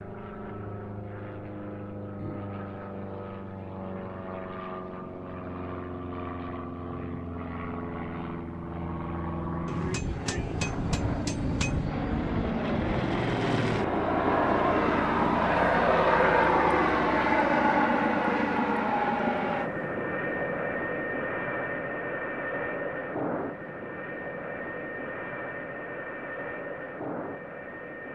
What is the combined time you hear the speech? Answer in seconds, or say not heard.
not heard.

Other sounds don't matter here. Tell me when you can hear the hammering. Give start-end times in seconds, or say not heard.
9.7-11.9.